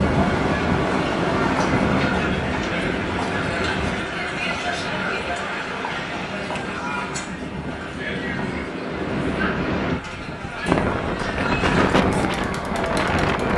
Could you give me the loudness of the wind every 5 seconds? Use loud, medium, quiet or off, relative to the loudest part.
loud, medium, loud.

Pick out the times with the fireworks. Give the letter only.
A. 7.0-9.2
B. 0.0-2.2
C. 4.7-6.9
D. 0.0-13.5
B.